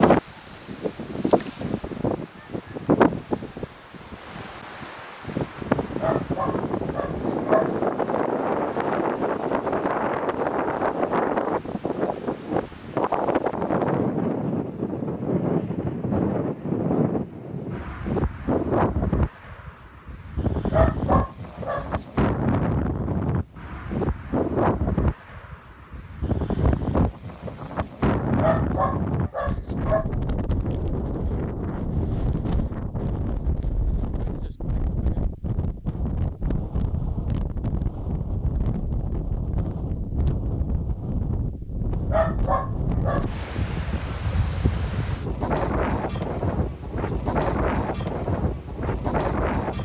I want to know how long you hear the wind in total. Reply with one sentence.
The wind can be heard for 50 seconds in total.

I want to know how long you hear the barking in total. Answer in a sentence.
You can hear the barking for 7 seconds altogether.